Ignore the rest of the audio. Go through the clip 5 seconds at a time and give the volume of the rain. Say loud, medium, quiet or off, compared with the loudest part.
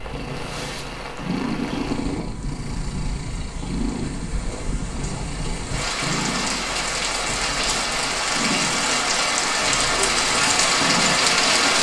quiet, medium, loud.